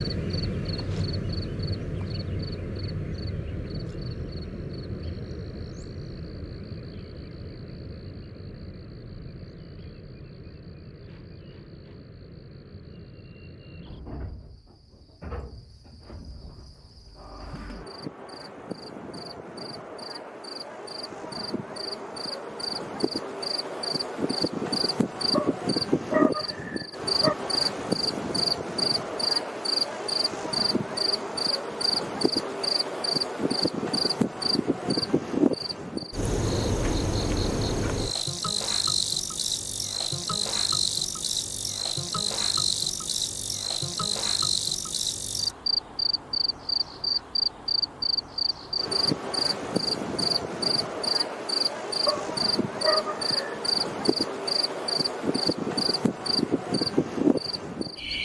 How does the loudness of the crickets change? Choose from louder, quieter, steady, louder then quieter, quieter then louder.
louder.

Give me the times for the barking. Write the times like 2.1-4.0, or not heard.
25.3-27.4, 52.0-53.6.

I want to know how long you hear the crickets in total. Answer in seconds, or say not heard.
58 s.